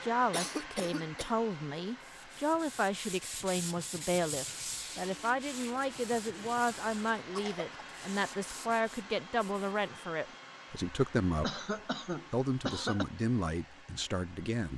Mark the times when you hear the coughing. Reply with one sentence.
The coughing can be heard from 0.3 to 1.4 s, from 7.2 to 7.7 s and from 11.4 to 13.1 s.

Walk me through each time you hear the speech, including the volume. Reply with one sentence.
The speech can be heard from 0.0 to 11.6 s, at a steady volume; and briefly from 12.3 to 14.7 s.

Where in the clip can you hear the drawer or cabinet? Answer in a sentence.
You can't hear the drawer or cabinet here.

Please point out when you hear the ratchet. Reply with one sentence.
The ratchet can't be heard in this clip.